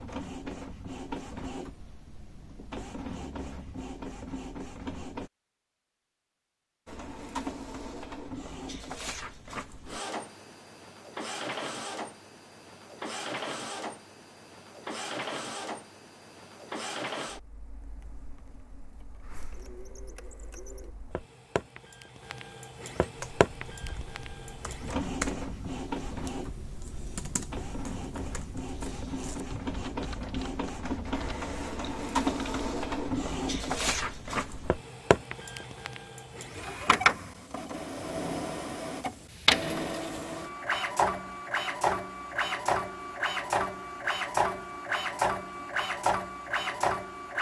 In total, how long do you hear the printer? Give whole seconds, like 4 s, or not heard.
46 s.